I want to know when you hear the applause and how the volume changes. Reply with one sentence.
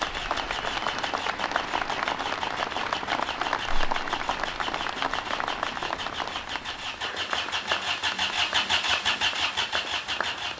You can hear the applause from 0.0 to 10.5 s, getting quieter.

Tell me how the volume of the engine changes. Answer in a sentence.
The loudness of the engine goes up.